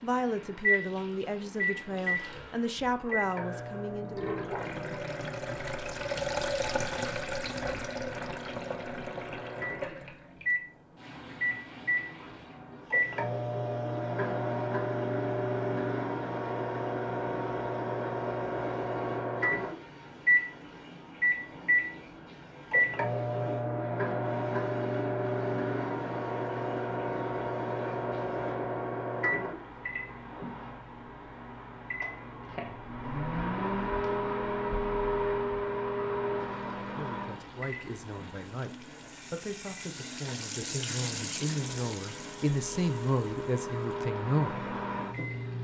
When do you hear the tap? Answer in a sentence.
You can hear the tap from 0.0 to 28.6 s and from 36.4 to 45.5 s.